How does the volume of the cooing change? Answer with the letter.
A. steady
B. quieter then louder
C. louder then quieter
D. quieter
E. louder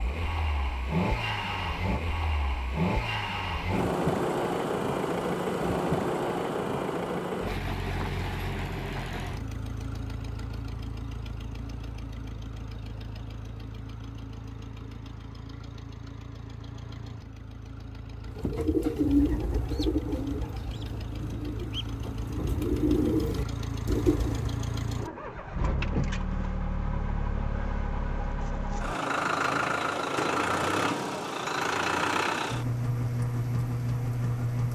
B.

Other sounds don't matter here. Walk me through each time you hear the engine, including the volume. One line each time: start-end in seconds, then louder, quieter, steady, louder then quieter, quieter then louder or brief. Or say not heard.
0.0-34.7 quieter then louder.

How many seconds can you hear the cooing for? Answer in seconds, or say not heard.
6 s.